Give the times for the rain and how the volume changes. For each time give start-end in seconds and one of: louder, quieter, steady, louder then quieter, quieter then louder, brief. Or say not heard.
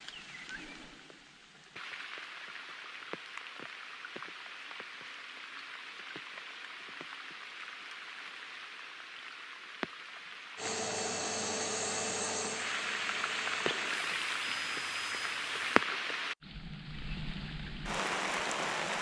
0.0-18.9 louder.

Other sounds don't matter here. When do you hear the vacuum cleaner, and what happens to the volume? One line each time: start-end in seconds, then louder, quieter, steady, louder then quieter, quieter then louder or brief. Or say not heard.
10.6-15.8 quieter.